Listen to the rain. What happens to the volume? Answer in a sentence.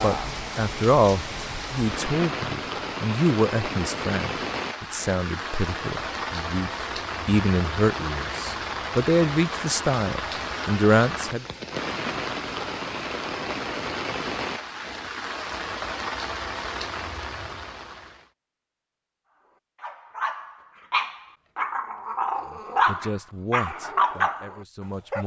The volume of the rain stays about the same.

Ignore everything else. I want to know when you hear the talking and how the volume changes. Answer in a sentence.
You can hear the talking from 0.0 to 11.4 s, getting quieter then louder; and briefly from 22.5 to 25.2 s.